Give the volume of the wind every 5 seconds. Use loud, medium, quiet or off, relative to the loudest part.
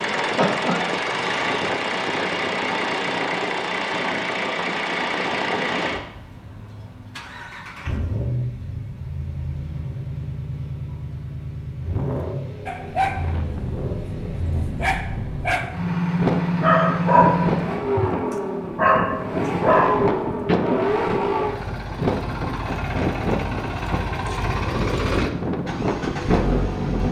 off, off, medium, loud, loud, loud.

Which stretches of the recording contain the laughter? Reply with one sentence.
The laughter can be heard from 0.2 to 1.1 s.